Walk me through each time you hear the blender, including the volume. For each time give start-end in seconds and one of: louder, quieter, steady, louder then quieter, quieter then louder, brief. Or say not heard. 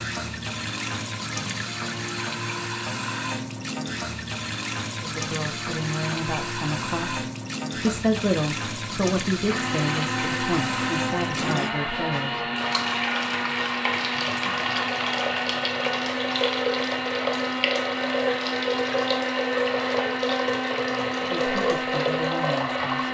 9.4-23.0 steady.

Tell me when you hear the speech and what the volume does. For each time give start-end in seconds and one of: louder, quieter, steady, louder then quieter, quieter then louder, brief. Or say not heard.
5.0-12.4 louder then quieter
21.1-23.0 brief.